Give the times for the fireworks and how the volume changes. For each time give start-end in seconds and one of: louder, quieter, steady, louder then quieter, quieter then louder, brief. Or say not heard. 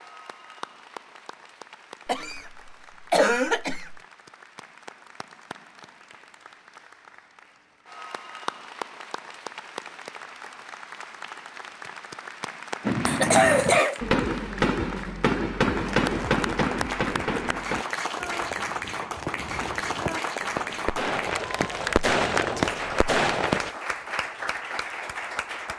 12.8-23.8 quieter then louder.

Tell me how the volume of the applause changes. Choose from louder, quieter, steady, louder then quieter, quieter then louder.
louder.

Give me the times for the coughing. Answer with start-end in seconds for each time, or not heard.
2.0-4.0, 13.1-14.0.